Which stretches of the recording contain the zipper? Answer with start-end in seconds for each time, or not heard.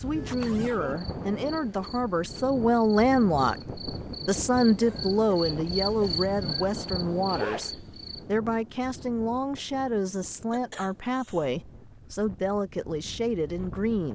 0.1-0.8, 7.2-7.7.